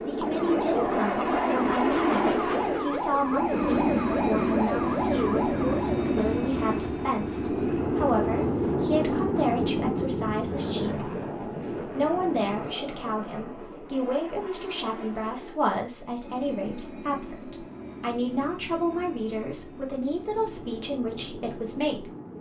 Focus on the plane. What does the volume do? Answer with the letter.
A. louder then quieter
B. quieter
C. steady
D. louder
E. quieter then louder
B.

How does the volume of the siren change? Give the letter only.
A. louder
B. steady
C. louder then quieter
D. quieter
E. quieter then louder
B.